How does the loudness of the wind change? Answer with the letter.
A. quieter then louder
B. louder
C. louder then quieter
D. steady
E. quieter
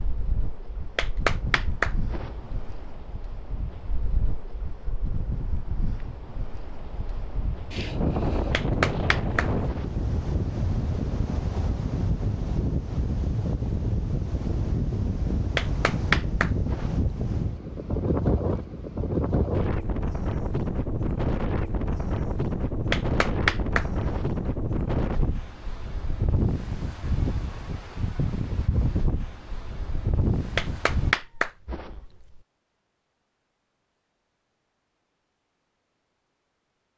B.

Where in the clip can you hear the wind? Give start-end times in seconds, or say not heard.
0.0-31.1.